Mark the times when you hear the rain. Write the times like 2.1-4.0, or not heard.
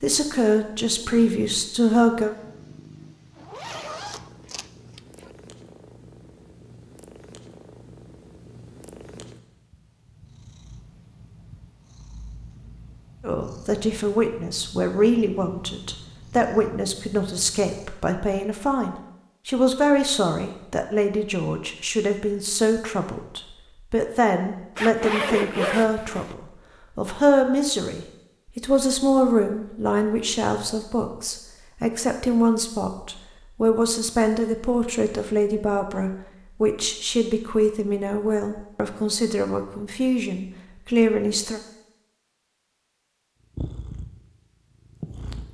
not heard.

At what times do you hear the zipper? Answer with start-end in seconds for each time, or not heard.
3.4-5.3, 24.8-26.4.